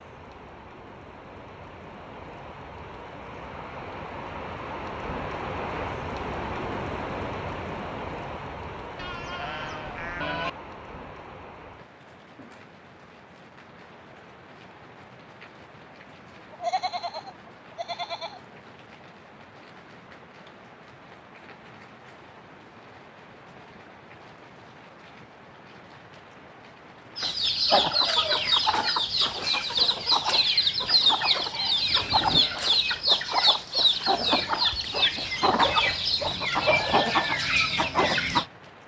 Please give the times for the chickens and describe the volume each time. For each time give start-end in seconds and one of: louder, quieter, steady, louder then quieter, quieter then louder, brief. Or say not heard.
27.1-38.5 steady.